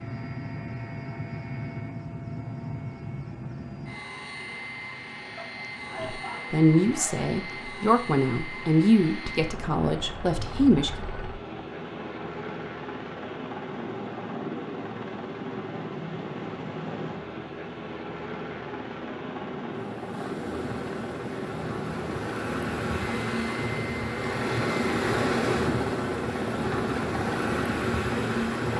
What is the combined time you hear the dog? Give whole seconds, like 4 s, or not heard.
2 s.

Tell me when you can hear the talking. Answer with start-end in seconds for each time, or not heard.
6.0-10.9.